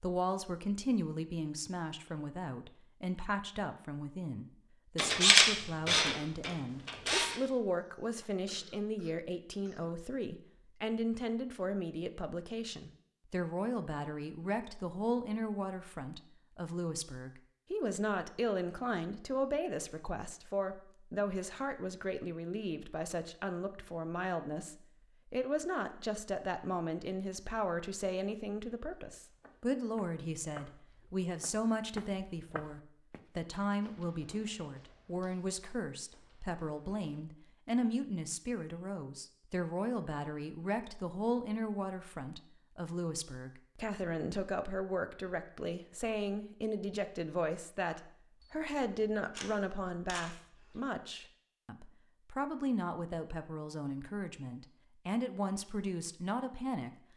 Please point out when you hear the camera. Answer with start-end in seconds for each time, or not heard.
5.0-7.3, 48.4-50.8.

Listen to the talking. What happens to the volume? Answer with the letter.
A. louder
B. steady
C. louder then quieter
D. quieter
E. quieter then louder
B.